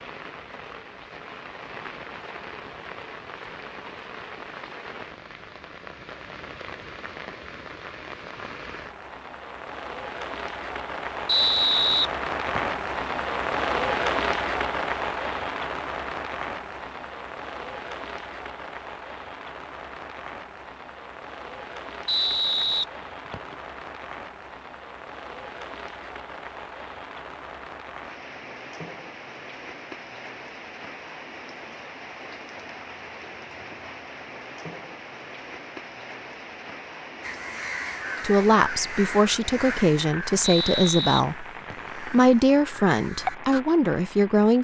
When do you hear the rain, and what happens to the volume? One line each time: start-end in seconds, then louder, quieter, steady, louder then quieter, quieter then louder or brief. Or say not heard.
0.0-44.5 louder then quieter.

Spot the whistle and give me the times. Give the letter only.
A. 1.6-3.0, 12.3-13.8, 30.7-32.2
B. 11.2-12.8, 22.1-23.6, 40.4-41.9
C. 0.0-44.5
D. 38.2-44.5
B.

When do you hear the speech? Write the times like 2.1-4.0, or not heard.
38.2-44.5.